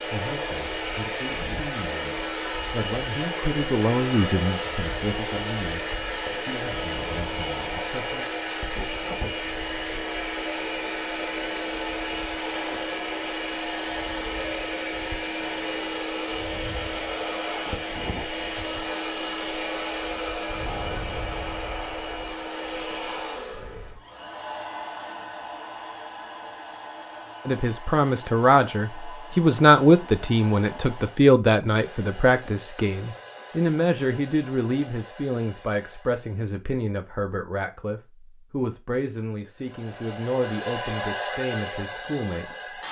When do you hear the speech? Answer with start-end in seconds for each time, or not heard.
0.0-8.2, 27.4-42.8.